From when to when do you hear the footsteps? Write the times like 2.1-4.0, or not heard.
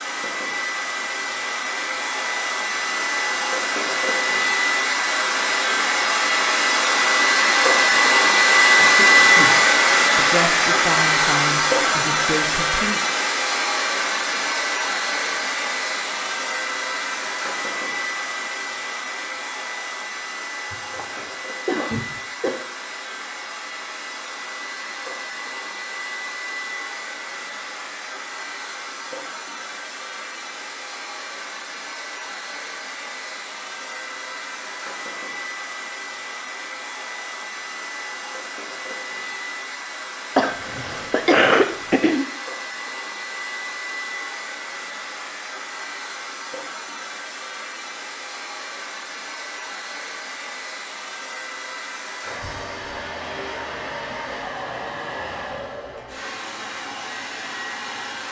not heard.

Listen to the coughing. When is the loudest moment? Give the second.
41 s.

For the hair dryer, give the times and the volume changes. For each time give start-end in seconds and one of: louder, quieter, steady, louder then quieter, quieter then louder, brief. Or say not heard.
0.0-58.2 quieter.